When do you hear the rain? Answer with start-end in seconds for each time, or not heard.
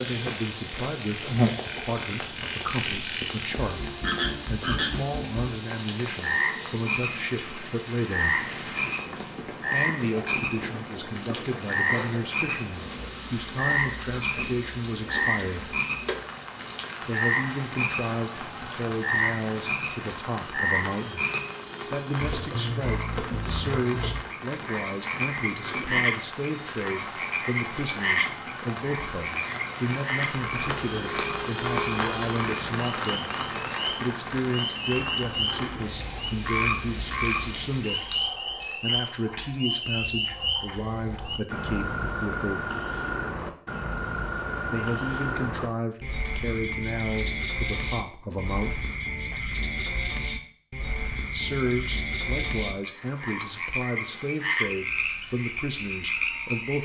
0.0-38.4.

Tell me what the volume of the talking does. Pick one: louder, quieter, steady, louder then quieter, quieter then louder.
steady.